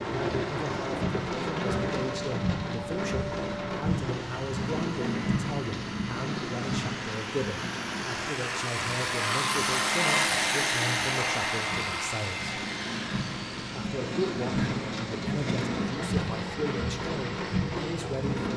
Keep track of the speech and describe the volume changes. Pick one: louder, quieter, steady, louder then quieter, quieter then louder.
steady.